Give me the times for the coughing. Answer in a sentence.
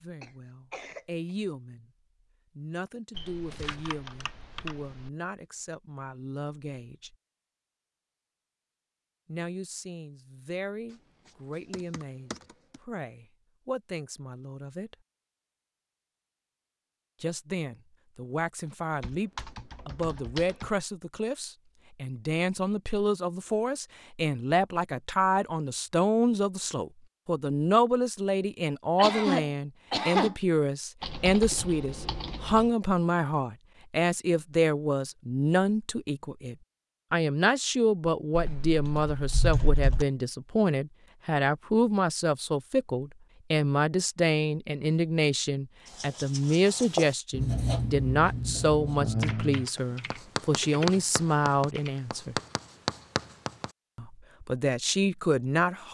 The coughing can be heard from 0.2 to 1.1 s and from 28.9 to 30.4 s.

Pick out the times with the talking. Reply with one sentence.
The talking can be heard from 0.0 to 1.9 s, from 2.5 to 7.2 s, from 9.2 to 14.9 s, from 17.2 to 52.4 s and from 54.0 to 55.8 s.